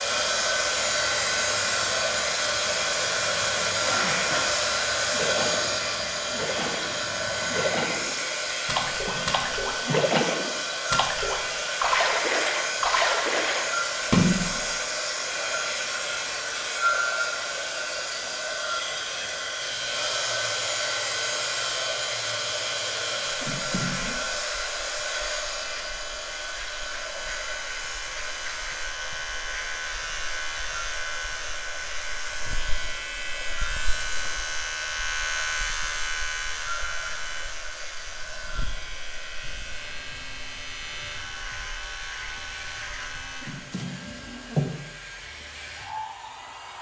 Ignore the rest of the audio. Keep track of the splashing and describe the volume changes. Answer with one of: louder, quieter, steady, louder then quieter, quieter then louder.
louder.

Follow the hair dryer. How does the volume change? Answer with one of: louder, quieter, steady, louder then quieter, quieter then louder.
quieter.